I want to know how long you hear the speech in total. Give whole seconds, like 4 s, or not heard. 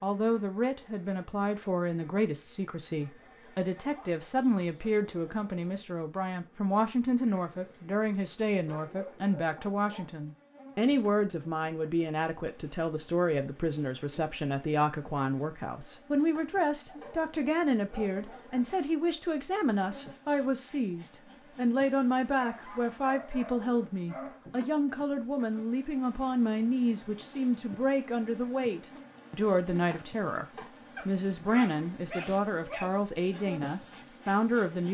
34 s.